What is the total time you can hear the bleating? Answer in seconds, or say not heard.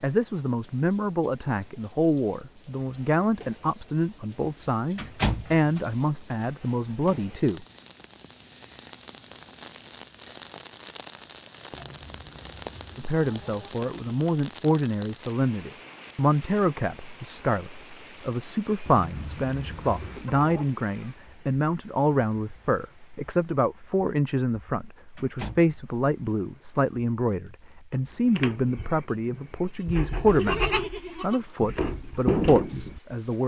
5 s.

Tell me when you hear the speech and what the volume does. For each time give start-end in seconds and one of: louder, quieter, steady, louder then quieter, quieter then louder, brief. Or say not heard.
0.0-7.7 steady
12.9-33.4 steady.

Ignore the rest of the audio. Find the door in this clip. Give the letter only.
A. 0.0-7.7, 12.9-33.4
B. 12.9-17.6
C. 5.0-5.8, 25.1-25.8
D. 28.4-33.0
C.